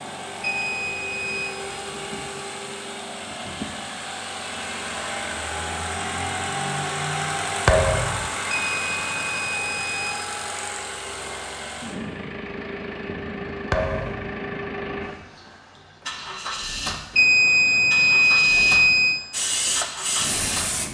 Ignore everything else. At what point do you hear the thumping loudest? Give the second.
8 s.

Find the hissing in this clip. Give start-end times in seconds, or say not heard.
19.3-20.8.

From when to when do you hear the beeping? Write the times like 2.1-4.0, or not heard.
0.4-1.6, 8.5-10.2, 17.1-19.2.